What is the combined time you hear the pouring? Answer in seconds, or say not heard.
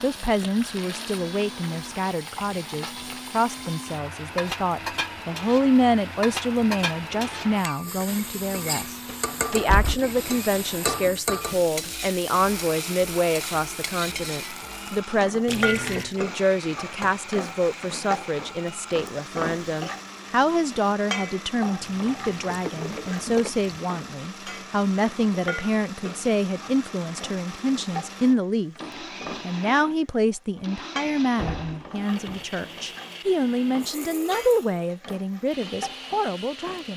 3 s.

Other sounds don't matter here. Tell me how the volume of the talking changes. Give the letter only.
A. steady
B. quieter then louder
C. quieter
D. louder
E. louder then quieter
A.